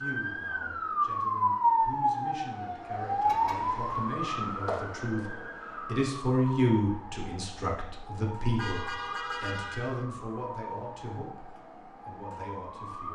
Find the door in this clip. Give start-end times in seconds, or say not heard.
not heard.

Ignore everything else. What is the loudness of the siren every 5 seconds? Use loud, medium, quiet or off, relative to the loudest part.
loud, quiet, quiet.